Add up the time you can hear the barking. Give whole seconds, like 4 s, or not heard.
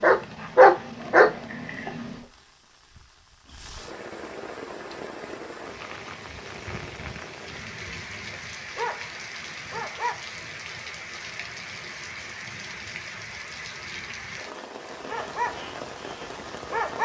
5 s.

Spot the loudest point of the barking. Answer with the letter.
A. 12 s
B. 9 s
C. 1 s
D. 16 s
C.